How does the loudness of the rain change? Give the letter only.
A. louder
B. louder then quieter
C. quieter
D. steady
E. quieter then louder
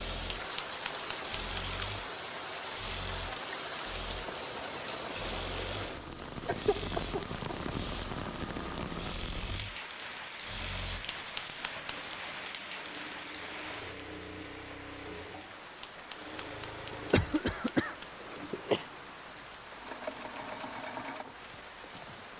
C.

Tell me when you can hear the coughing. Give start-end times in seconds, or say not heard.
6.5-7.8, 16.9-18.9.